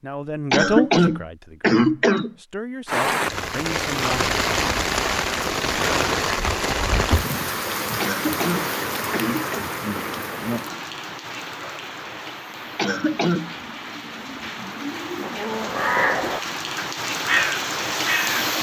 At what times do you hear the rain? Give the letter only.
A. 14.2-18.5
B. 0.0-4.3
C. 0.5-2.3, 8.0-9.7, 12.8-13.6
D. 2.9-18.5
D.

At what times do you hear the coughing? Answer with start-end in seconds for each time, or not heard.
0.5-2.3, 8.0-9.7, 12.8-13.6.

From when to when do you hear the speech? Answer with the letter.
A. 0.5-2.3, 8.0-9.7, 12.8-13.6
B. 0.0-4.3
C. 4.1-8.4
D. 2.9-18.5
B.